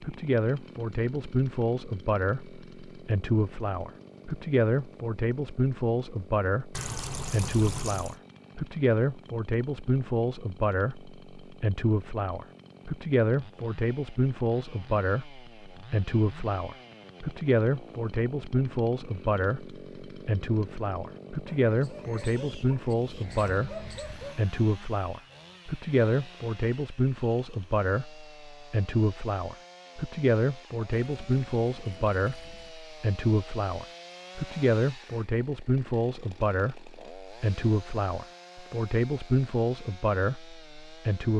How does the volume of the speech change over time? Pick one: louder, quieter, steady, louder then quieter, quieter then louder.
steady.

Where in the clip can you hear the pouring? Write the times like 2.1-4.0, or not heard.
6.7-8.2, 31.1-32.8.